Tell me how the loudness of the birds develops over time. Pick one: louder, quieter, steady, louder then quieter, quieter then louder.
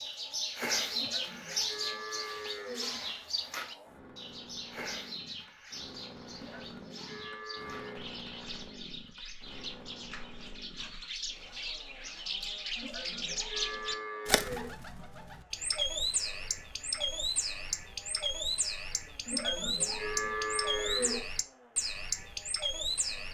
quieter then louder.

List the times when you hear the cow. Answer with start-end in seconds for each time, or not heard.
0.9-2.9, 6.3-8.1, 12.8-14.8, 19.2-21.2.